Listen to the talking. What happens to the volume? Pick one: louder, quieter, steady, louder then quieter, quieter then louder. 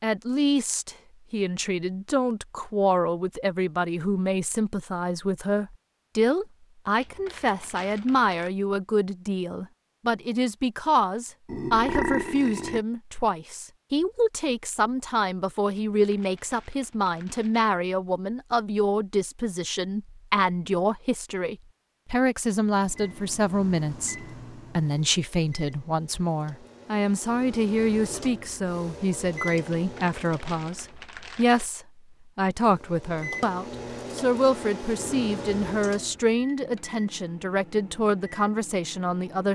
steady.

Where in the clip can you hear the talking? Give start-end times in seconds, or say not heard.
0.0-39.4.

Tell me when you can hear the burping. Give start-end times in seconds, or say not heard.
11.4-12.8.